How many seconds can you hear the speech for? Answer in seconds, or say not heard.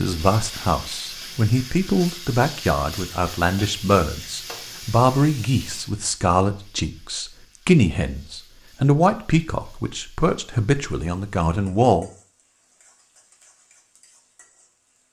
12 s.